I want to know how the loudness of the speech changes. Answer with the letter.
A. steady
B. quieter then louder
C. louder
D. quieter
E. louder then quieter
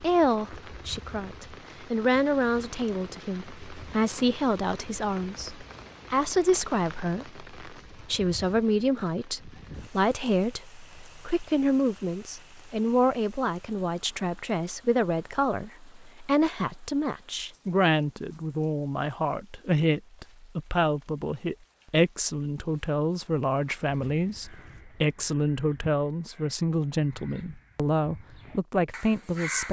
A.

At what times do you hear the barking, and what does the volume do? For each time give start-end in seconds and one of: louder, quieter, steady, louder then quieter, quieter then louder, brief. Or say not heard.
not heard.